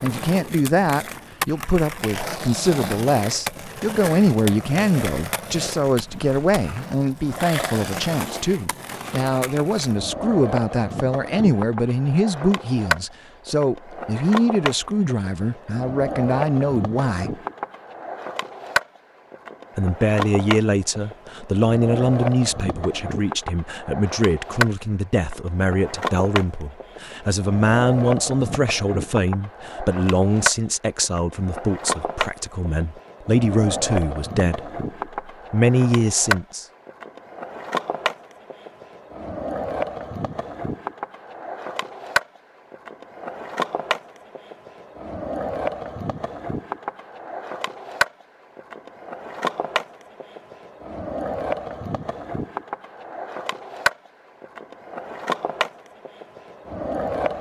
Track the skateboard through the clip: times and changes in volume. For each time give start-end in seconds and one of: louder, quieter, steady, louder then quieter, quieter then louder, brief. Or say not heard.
0.0-57.3 steady.